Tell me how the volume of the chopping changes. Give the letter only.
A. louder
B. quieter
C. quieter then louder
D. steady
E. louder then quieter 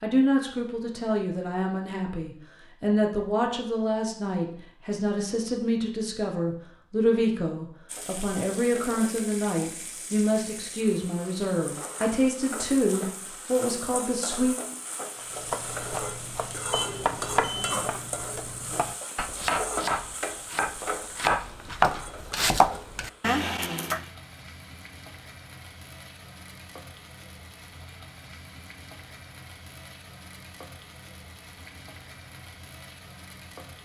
A.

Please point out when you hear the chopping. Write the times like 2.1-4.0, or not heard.
15.2-24.0.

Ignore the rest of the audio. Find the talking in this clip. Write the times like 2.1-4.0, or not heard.
0.0-14.6.